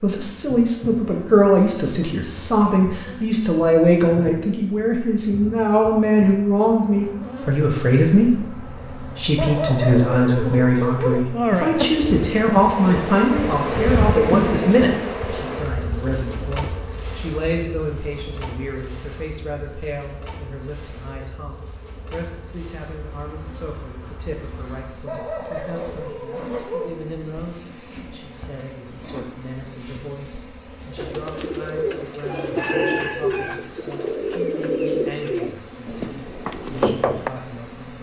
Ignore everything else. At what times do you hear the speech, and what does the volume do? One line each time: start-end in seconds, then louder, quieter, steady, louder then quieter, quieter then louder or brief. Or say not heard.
0.0-37.9 quieter.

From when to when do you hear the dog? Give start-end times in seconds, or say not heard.
9.3-11.2, 25.1-26.9.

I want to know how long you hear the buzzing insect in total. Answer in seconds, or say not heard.
38 s.